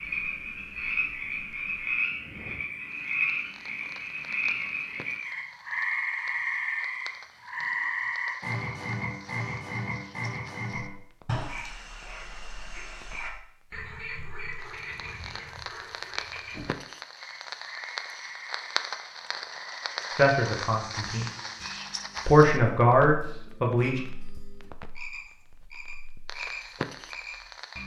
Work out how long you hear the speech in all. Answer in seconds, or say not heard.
3 s.